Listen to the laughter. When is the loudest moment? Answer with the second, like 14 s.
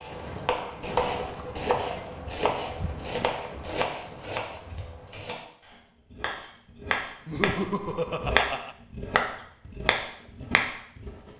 8 s.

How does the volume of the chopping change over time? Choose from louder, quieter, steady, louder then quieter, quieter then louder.
quieter then louder.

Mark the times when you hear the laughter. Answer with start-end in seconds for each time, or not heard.
0.7-1.6, 7.2-8.8.